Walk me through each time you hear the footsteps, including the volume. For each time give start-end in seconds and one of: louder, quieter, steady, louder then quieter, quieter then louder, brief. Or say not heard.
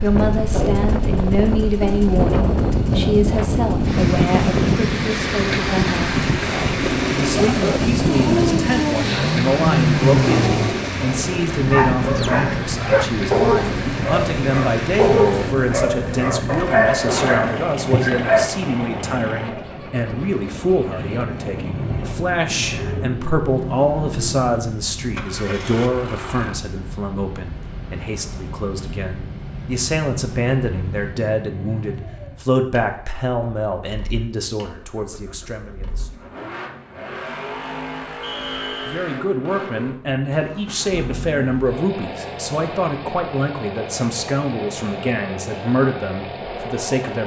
not heard.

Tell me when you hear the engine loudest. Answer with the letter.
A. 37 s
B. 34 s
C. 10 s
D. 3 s
C.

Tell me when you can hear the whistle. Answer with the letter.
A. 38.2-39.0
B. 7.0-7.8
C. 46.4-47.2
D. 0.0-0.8
A.